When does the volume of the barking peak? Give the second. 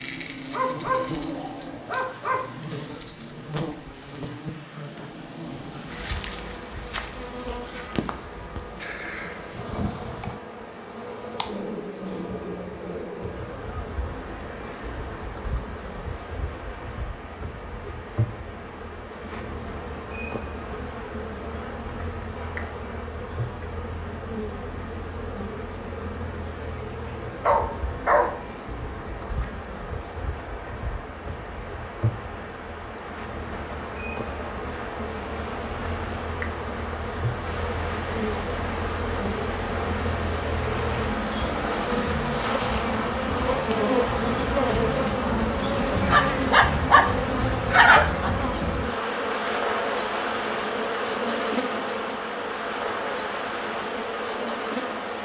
48 s.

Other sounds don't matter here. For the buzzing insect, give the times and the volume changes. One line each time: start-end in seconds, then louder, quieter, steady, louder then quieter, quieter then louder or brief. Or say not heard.
0.0-55.2 louder.